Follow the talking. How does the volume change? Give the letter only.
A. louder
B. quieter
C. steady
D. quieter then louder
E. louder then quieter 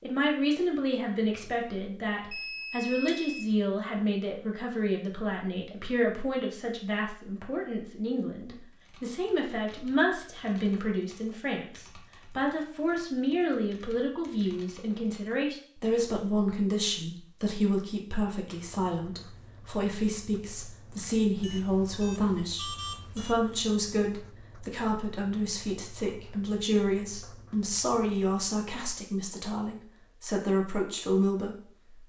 C.